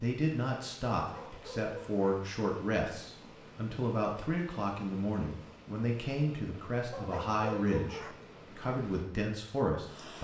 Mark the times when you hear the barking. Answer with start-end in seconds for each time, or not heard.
1.0-2.1, 6.9-8.2.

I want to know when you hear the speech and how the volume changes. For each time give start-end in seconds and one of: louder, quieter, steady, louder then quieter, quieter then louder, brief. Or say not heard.
0.0-10.2 steady.